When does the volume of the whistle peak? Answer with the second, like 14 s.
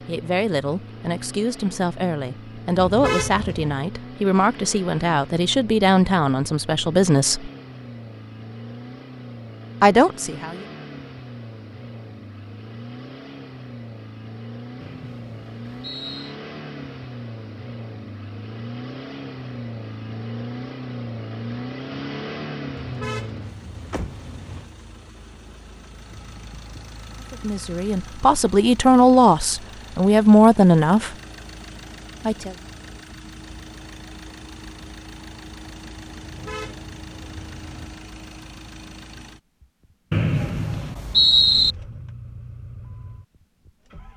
41 s.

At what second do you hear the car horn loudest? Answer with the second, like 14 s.
3 s.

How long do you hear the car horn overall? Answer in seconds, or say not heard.
5 s.